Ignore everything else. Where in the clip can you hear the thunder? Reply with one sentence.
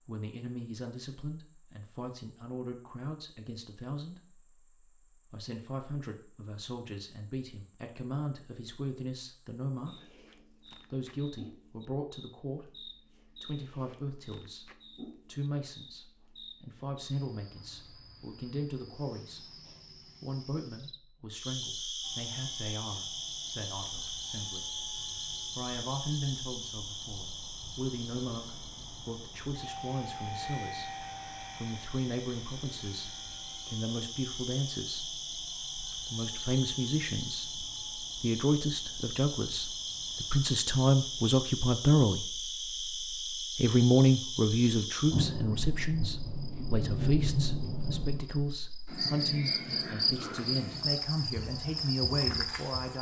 The thunder can be heard from 45.1 to 48.2 s.